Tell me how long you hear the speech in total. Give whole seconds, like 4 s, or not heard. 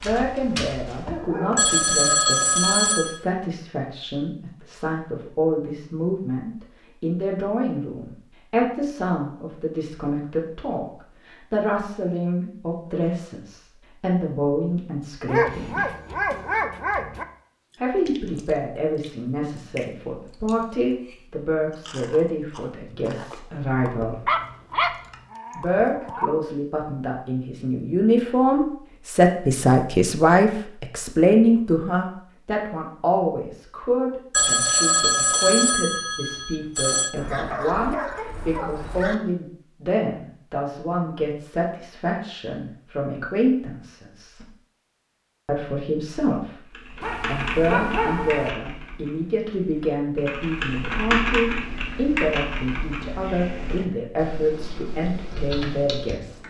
52 s.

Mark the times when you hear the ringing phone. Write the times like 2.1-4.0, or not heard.
1.6-3.1, 34.3-37.1.